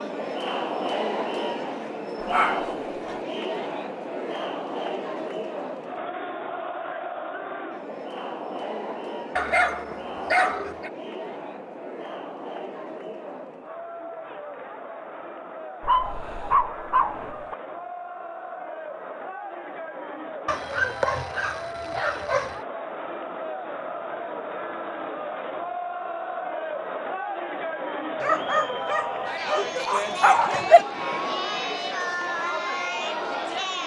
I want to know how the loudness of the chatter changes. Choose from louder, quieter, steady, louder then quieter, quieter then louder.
quieter then louder.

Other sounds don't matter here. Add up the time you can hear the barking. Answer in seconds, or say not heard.
9 s.